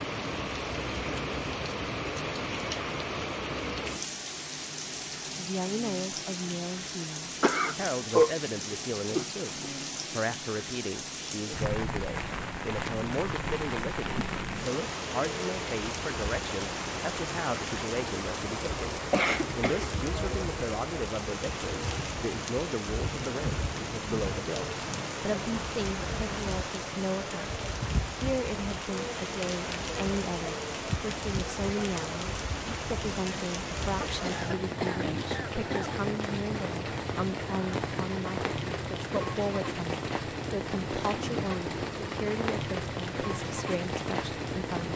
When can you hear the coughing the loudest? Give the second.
8 s.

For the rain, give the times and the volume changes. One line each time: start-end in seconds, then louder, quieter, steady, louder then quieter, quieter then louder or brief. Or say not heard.
0.0-44.9 steady.